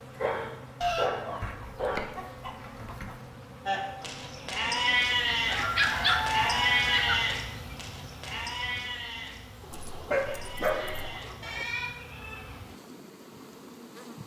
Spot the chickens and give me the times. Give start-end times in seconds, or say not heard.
0.8-3.2, 5.3-7.2, 9.6-11.7.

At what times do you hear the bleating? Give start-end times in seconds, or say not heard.
3.6-12.6.